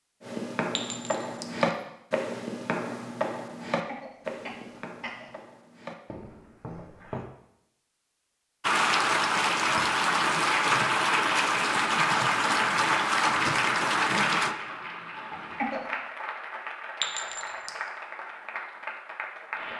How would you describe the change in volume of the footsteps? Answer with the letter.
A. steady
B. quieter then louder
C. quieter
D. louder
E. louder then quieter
C.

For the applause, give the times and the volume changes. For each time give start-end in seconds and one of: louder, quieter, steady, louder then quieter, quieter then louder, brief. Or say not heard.
8.6-19.7 quieter.